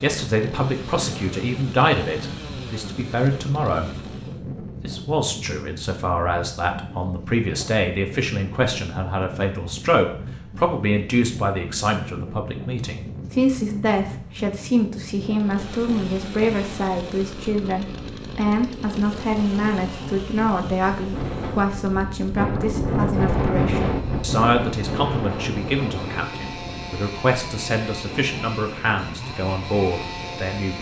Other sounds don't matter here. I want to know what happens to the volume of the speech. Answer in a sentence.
The loudness of the speech stays about the same.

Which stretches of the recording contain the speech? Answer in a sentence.
You can hear the speech from 0.0 to 30.7 s.